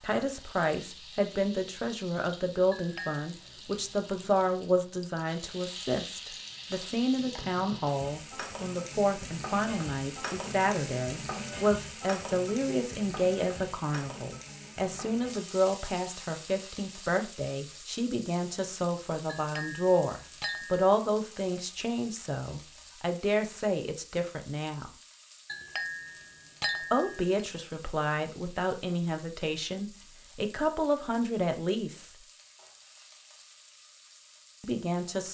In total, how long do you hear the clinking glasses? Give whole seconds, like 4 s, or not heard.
4 s.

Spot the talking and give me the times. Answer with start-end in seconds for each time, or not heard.
0.0-24.9, 26.9-32.1, 34.6-35.3.